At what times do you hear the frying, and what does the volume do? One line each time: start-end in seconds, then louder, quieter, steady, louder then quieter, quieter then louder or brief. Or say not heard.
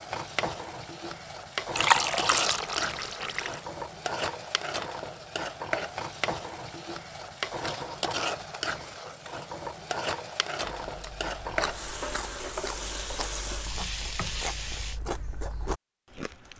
0.0-15.0 steady.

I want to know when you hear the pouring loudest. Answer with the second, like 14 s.
2 s.